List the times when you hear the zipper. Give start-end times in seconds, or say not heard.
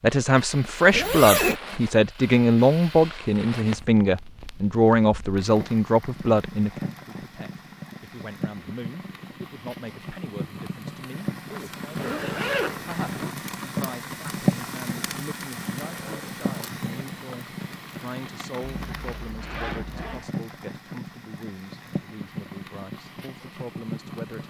0.9-1.6, 11.9-13.3, 18.8-20.2.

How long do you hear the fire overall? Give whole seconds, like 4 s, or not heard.
24 s.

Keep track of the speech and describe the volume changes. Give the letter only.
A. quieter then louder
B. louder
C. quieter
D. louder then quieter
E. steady
C.